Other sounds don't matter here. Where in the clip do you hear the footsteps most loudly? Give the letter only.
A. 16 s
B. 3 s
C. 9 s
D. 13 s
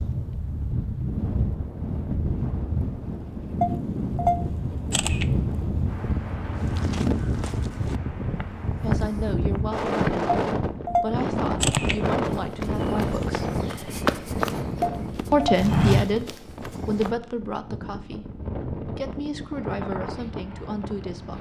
A.